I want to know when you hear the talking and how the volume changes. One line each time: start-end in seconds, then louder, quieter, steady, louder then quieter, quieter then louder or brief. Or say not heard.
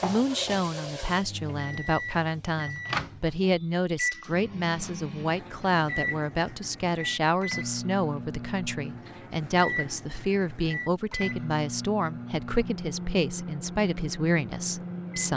0.0-15.3 steady.